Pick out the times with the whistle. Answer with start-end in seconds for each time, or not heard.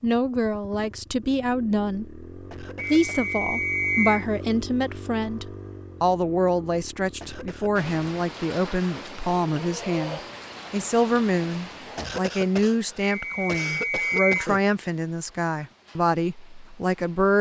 2.8-4.2, 13.0-14.4.